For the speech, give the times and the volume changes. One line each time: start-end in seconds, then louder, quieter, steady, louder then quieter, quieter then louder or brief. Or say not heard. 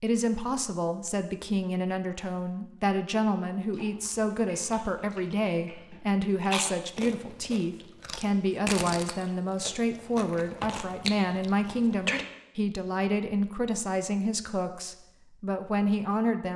0.0-16.5 steady.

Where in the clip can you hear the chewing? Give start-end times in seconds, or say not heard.
3.6-12.2.